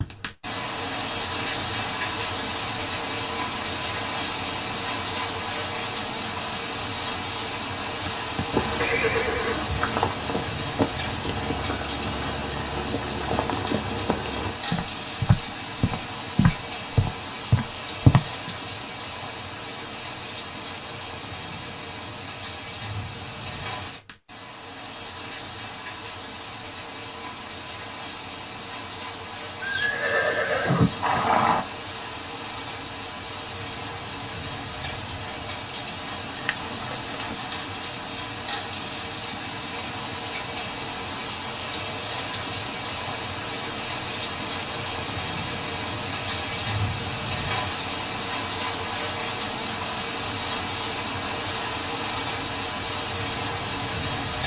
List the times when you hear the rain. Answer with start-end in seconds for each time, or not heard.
0.0-54.4.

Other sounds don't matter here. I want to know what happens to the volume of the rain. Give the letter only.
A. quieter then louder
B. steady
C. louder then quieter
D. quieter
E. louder
A.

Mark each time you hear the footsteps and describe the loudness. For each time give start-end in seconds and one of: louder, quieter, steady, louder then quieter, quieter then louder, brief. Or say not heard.
8.1-18.5 louder.